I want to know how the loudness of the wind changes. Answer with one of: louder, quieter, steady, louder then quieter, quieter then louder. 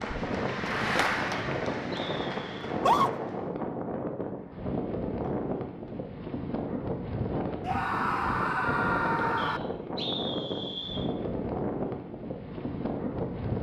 steady.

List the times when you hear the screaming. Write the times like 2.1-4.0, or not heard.
2.6-3.1, 7.6-9.6.